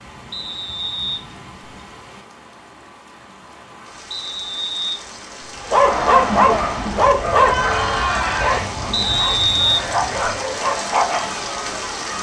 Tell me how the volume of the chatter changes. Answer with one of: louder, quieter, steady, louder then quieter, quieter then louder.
quieter.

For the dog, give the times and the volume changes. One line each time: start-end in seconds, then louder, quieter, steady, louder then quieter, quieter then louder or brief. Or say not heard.
5.7-11.3 quieter then louder.